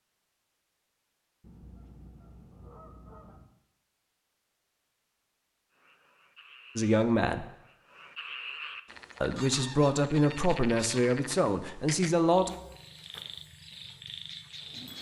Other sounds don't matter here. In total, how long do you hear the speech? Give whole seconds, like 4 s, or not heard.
4 s.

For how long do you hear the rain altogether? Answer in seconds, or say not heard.
not heard.